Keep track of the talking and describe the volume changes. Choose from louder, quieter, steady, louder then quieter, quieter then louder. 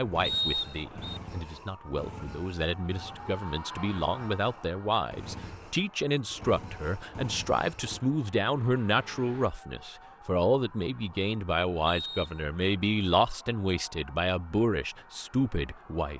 louder.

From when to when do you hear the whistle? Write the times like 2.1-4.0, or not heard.
0.2-1.2, 11.8-12.4.